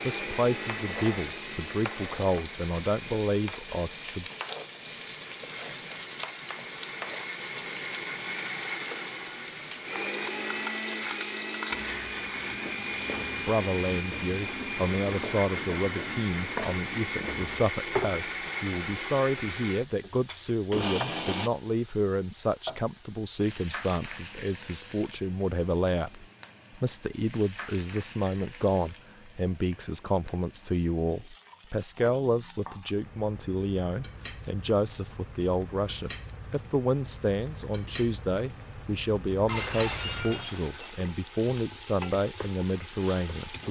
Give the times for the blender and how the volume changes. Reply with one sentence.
The blender can be heard from 0.0 to 21.5 s, getting louder.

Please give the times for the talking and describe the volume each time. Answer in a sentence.
You can hear the talking from 0.0 to 4.2 s, getting quieter then louder; and from 13.3 to 43.6 s, at a steady volume.